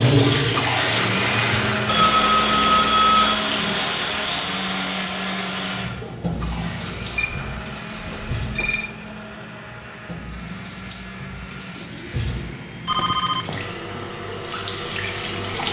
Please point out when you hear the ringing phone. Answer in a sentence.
The ringing phone can be heard from 1.9 to 3.5 s, from 7.2 to 8.9 s and from 12.8 to 14.1 s.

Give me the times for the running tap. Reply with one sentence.
The running tap can be heard from 0.0 to 15.6 s.